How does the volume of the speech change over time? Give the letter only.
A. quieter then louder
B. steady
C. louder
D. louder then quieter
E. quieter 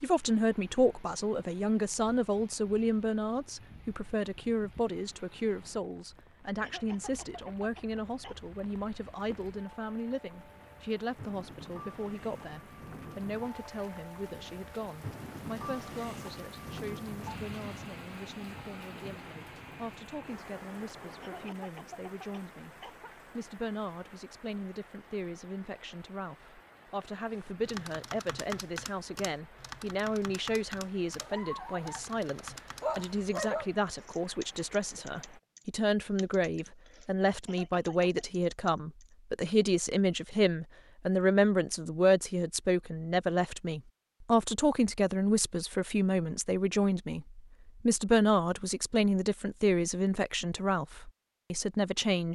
A.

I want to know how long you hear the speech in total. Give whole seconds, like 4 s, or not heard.
52 s.